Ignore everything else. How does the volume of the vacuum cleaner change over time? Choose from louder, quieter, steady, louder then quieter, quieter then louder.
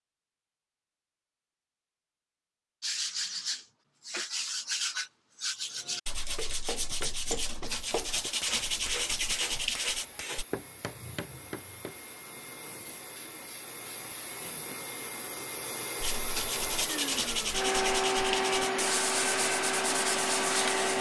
louder.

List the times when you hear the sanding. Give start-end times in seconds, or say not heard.
2.8-10.4, 16.0-20.9.